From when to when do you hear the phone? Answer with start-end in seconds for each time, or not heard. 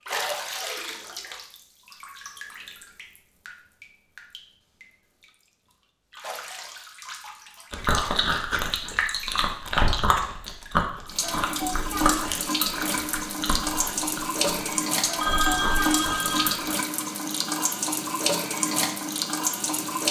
15.2-16.6.